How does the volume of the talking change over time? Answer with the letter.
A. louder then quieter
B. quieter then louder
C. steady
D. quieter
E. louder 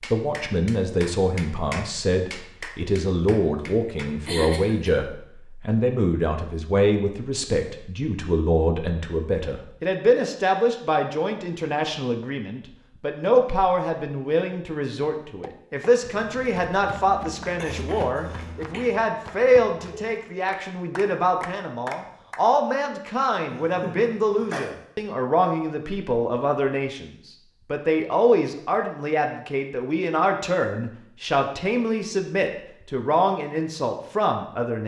C.